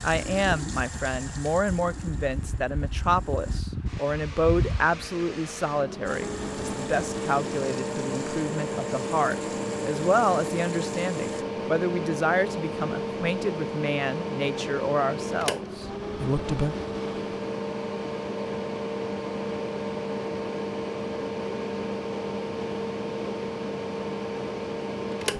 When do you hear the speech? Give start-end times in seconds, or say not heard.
0.0-16.8.